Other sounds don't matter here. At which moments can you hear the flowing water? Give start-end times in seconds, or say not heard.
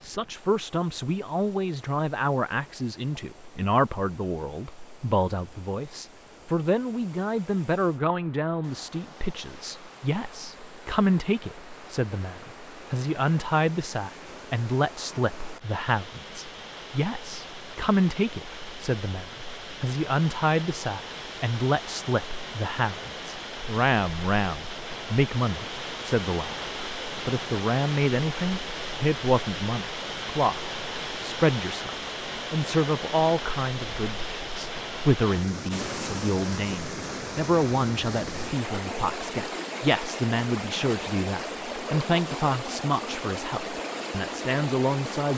0.0-45.3.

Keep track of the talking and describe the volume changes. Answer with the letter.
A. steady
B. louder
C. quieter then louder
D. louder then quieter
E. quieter
A.